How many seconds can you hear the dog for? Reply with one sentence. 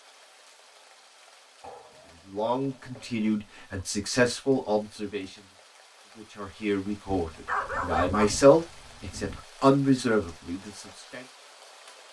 You can hear the dog for 4 seconds altogether.